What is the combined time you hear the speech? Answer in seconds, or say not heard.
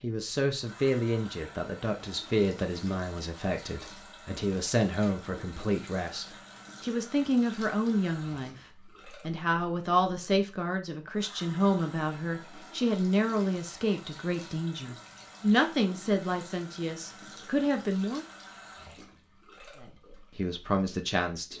20 s.